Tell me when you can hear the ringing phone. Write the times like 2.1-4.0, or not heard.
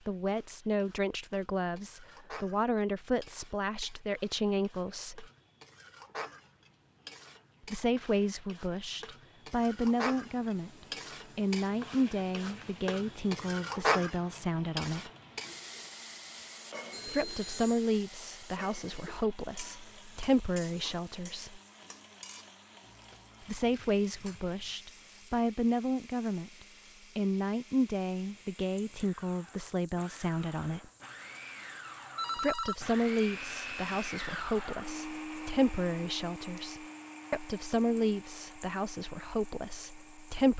16.9-17.9, 32.1-32.8.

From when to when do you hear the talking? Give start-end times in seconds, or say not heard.
0.1-5.2, 7.7-15.1, 17.1-21.6, 23.4-30.9, 32.4-40.5.